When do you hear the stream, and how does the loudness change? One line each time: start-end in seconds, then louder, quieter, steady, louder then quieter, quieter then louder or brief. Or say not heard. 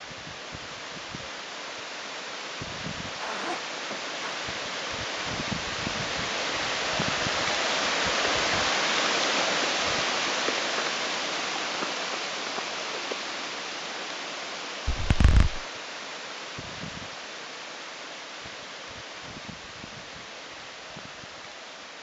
0.0-21.9 louder then quieter.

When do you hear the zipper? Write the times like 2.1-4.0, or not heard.
3.2-4.5, 14.8-15.6.